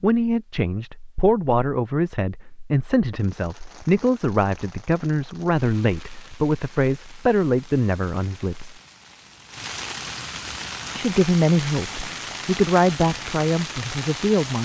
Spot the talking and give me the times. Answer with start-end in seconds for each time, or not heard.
0.0-8.8, 10.9-14.6.